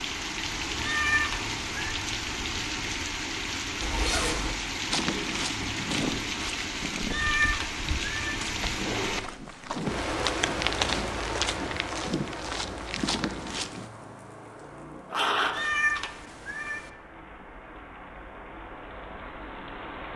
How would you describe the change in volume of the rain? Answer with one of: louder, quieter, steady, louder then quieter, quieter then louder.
quieter.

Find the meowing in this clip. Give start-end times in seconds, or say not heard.
0.8-2.0, 7.1-8.4, 15.5-16.9.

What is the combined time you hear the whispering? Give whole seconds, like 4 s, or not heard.
not heard.